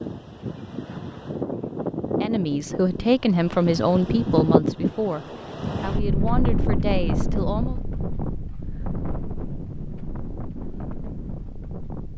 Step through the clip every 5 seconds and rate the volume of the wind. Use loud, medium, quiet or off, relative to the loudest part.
loud, loud, medium.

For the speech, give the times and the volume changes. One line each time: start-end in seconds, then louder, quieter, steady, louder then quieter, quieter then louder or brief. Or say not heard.
2.2-7.8 quieter.